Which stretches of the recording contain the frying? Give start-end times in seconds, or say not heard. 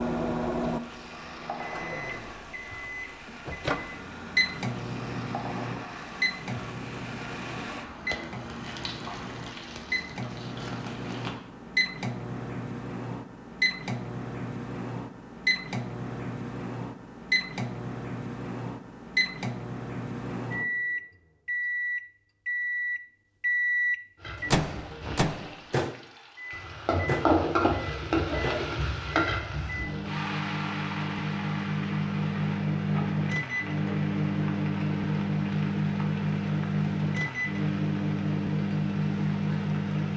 0.0-11.4, 24.1-40.1.